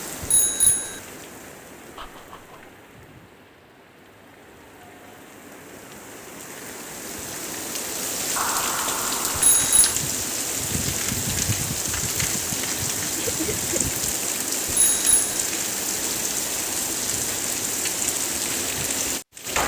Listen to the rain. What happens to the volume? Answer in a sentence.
The volume of the rain goes up.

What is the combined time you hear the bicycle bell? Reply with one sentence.
The bicycle bell can be heard for 2 seconds in total.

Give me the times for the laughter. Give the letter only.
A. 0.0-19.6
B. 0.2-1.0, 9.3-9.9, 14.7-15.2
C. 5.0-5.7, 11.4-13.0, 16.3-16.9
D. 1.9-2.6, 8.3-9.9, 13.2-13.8
D.